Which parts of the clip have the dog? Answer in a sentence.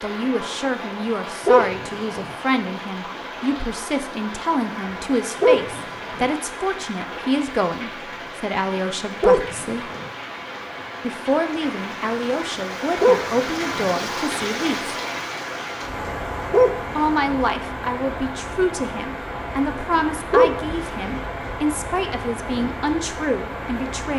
You can hear the dog from 1.4 to 2.4 s, from 5.4 to 6.3 s, from 9.2 to 10.1 s, from 13.0 to 13.9 s, from 16.5 to 17.4 s and from 20.3 to 21.2 s.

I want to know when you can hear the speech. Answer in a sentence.
You can hear the speech from 0.0 to 9.9 s, from 11.0 to 14.9 s and from 16.9 to 24.1 s.